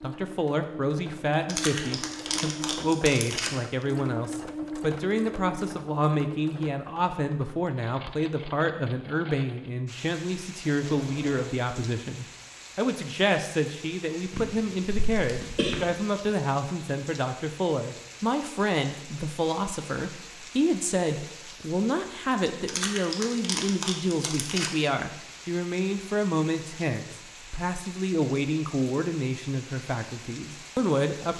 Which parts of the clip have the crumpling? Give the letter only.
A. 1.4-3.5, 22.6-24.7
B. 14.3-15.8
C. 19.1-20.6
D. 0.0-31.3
A.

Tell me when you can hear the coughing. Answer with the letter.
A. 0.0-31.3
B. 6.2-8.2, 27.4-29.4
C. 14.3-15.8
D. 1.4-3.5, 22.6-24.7
C.